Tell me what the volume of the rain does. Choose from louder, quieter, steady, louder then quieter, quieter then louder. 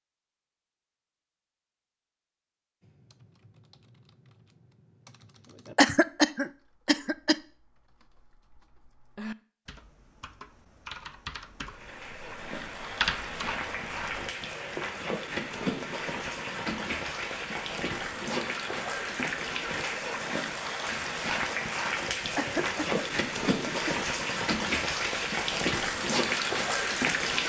louder.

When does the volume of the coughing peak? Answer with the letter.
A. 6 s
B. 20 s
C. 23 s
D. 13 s
A.